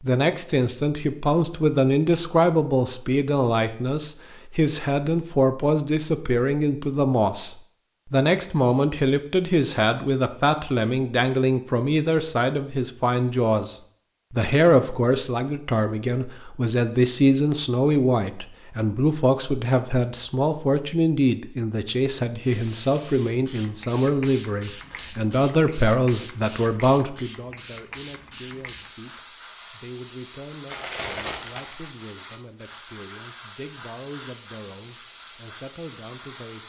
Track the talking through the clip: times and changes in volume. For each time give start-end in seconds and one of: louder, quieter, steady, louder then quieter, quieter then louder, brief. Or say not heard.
0.0-36.6 quieter.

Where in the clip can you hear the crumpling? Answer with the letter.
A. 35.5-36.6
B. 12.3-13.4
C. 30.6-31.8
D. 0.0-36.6
C.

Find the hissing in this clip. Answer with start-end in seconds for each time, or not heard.
22.4-36.6.